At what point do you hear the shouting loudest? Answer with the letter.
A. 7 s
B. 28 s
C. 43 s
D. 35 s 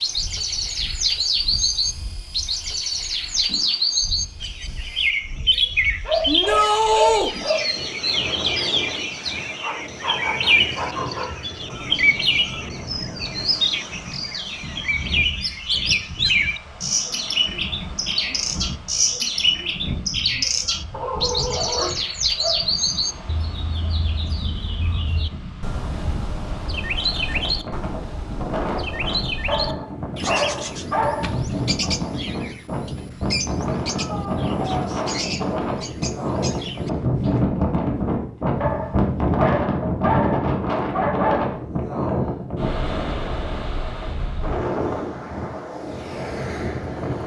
A.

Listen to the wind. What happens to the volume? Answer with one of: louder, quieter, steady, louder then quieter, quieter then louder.
louder.